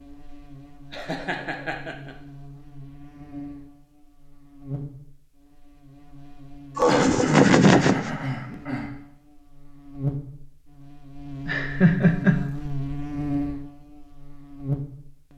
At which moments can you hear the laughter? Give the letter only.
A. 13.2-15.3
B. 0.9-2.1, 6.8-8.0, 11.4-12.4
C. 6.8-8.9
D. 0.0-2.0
B.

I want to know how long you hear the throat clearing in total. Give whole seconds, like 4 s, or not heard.
2 s.